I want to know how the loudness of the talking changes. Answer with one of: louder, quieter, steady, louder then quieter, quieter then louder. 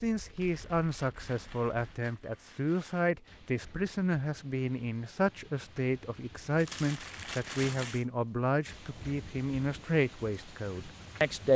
steady.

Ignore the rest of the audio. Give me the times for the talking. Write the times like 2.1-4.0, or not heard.
0.0-11.5.